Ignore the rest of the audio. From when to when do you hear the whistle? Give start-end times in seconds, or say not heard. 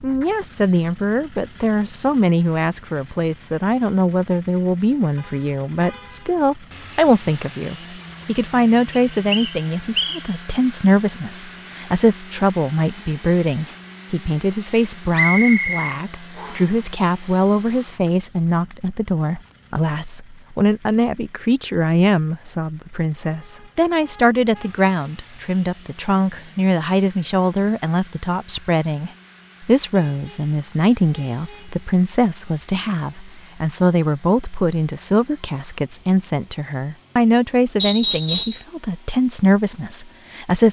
8.9-10.2, 15.1-16.6, 37.8-38.6.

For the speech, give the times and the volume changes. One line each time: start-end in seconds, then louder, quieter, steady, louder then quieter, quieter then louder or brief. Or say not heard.
0.0-40.6 steady.